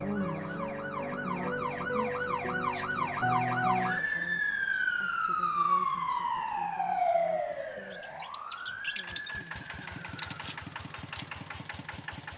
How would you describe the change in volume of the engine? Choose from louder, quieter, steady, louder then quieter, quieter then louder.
louder.